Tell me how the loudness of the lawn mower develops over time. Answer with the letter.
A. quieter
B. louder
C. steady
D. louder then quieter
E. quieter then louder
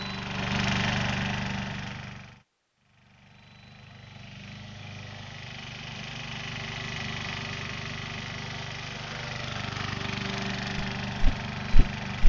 E.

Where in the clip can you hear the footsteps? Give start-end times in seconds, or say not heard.
10.8-12.2.